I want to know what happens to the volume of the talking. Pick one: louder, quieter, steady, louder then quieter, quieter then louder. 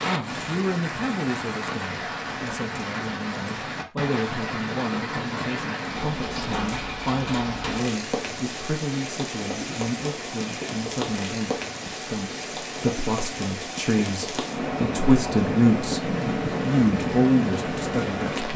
louder.